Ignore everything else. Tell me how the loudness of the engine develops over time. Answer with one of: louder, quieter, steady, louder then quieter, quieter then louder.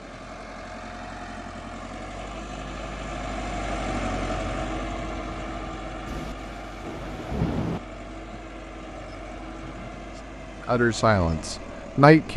louder then quieter.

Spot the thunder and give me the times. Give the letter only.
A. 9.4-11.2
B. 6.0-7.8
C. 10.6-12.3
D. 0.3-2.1
B.